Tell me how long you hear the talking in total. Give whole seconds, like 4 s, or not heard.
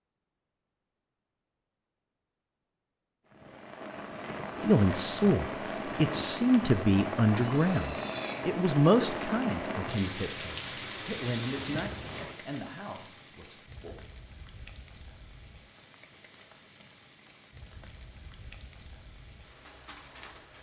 9 s.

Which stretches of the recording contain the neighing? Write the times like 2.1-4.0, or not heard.
7.3-8.5, 11.5-12.3.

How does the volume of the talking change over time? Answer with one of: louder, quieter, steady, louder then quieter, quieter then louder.
quieter.